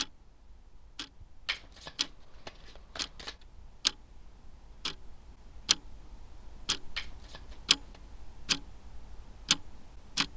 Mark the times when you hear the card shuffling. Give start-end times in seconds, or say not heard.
1.4-3.4, 6.9-8.0.